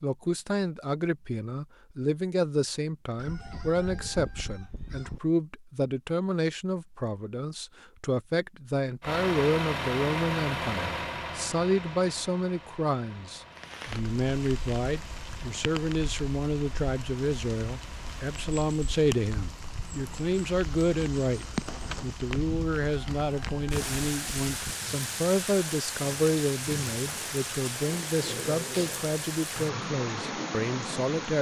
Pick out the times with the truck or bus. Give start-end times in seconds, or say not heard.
9.0-18.6.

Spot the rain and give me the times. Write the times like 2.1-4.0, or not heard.
13.6-31.3.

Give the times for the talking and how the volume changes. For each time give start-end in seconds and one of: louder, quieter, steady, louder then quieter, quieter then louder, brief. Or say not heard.
0.0-31.3 steady.